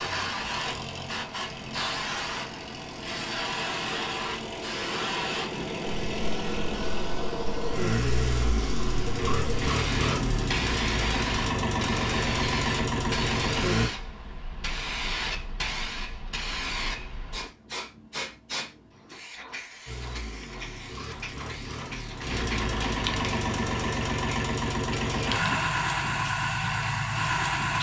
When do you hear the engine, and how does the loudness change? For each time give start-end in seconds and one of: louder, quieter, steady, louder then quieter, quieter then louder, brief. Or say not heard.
0.0-13.9 louder
19.9-27.7 louder.